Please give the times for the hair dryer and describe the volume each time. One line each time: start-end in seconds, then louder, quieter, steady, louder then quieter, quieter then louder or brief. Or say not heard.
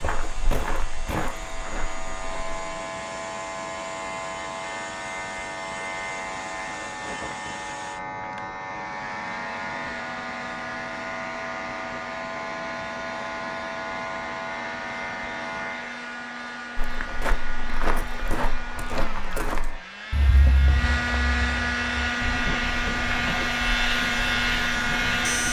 0.0-25.4 louder.